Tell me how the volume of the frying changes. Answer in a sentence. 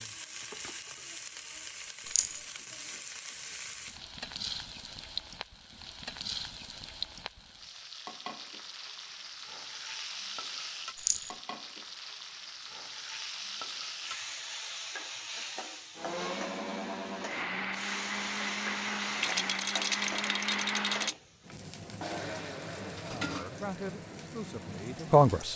The loudness of the frying stays about the same.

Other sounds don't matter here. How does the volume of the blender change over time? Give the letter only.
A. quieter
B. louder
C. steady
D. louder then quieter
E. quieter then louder
A.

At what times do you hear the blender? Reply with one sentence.
You can hear the blender from 15.9 to 25.5 s.